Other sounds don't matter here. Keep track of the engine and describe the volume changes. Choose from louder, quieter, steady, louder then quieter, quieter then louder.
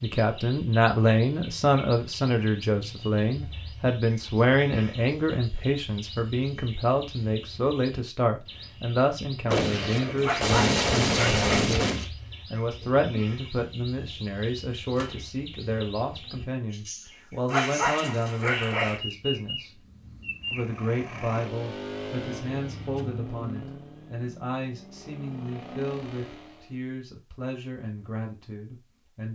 quieter then louder.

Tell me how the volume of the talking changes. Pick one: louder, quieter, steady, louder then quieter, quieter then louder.
quieter.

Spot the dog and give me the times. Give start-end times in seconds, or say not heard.
10.2-11.7, 17.4-19.0.